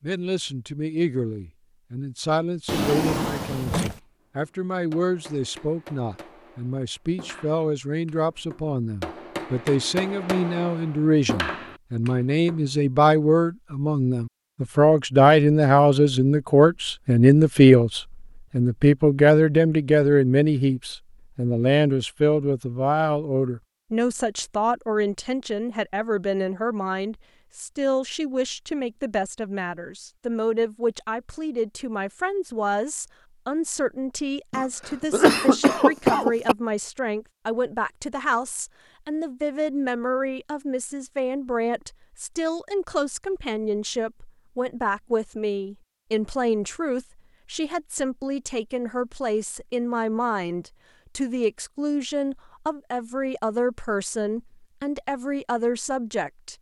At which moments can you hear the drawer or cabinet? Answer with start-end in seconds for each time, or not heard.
2.6-4.0.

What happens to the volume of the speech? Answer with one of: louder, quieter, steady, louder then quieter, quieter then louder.
louder then quieter.